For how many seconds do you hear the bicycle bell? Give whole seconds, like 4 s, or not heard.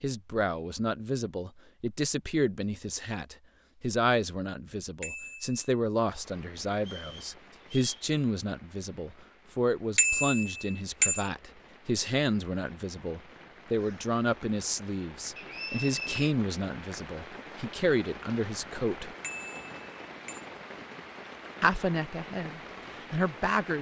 3 s.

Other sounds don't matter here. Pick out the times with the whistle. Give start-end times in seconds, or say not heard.
6.8-8.1, 15.3-16.4.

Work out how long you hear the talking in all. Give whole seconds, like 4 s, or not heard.
21 s.